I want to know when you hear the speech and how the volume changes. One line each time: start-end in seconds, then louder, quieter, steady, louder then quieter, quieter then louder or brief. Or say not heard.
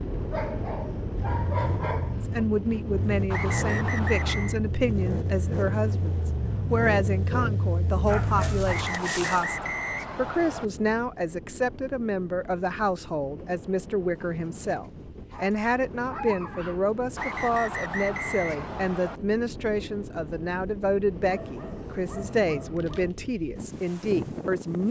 2.1-24.8 steady.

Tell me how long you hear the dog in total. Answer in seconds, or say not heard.
8 s.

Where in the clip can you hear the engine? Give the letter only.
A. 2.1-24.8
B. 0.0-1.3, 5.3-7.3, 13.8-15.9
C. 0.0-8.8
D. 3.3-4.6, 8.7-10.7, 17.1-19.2
C.